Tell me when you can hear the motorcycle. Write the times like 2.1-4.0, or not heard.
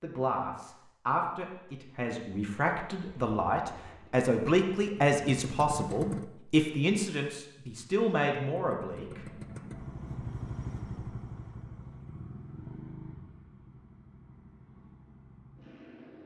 3.0-6.3, 8.6-16.2.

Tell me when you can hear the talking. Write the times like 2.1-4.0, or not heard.
0.0-9.2.